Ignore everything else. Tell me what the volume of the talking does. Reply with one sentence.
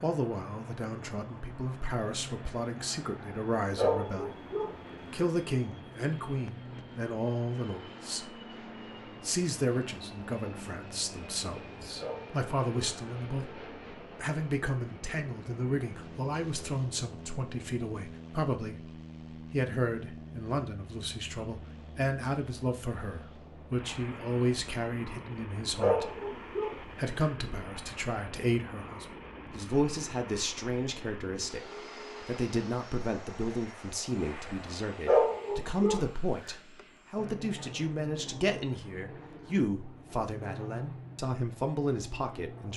The loudness of the talking stays about the same.